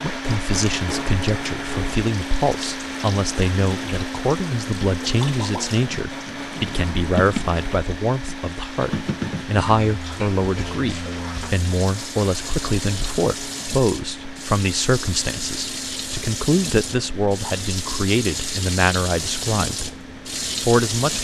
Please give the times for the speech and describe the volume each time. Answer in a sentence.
You can hear the speech from 0.0 to 19.9 s, at a steady volume; and briefly from 20.6 to 21.1 s.